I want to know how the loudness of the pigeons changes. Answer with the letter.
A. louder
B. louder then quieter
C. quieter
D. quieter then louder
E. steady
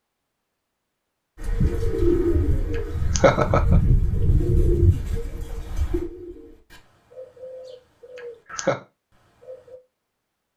C.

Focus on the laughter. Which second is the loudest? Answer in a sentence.
The volume of the laughter peaks at 3 seconds.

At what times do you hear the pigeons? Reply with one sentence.
You can hear the pigeons from 1.4 to 9.8 s.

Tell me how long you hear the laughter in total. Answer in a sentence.
The laughter can be heard for 2 seconds in total.